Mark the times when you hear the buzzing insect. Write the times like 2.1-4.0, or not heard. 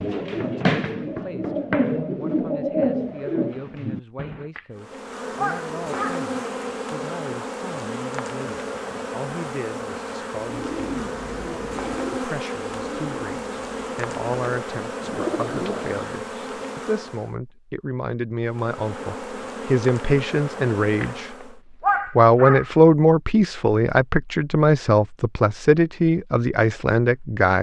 4.8-17.4, 18.4-21.6.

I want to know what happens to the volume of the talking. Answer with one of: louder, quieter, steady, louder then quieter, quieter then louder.
louder.